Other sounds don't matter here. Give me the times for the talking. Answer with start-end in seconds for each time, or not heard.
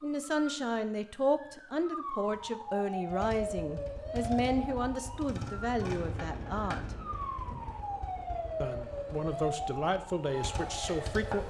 0.0-6.8, 8.6-11.4.